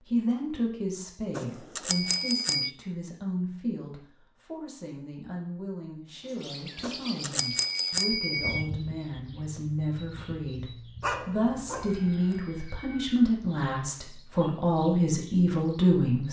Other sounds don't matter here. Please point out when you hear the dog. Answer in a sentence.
The dog can be heard from 11.0 to 11.9 s.